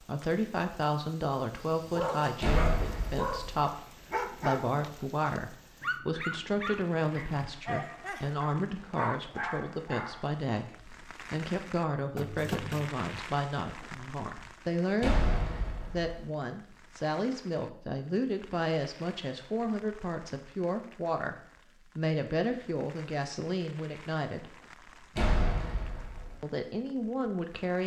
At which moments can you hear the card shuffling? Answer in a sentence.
The card shuffling can be heard from 12.2 to 12.9 s.